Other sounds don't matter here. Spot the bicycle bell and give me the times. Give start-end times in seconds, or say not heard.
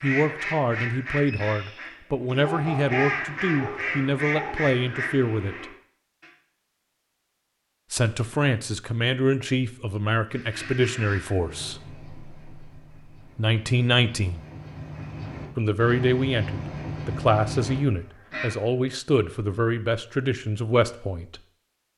not heard.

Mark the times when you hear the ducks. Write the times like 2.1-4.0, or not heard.
0.0-6.3, 10.3-18.6.